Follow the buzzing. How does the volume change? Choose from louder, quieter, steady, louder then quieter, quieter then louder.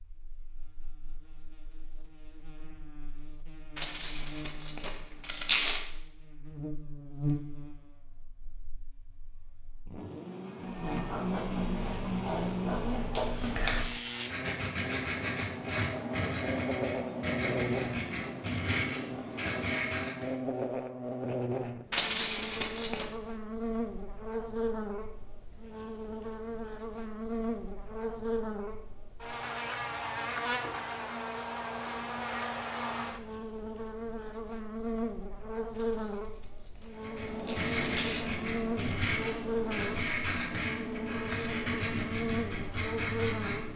louder.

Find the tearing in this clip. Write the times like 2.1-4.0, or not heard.
3.8-5.8, 21.9-23.1, 35.8-38.2.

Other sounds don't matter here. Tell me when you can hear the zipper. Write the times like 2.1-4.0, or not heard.
not heard.